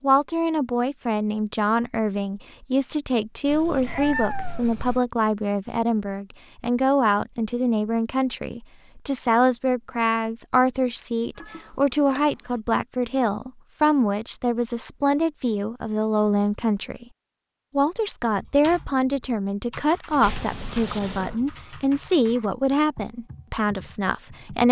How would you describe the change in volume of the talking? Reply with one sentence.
The volume of the talking stays about the same.